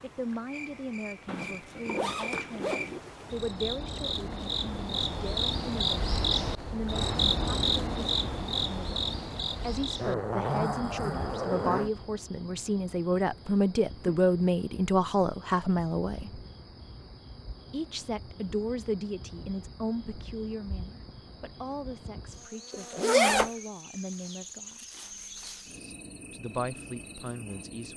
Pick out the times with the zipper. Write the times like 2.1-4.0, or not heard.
1.2-3.0, 9.9-11.9, 22.7-23.5.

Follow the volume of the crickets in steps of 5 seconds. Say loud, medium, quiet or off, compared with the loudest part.
medium, loud, quiet, quiet, quiet, quiet.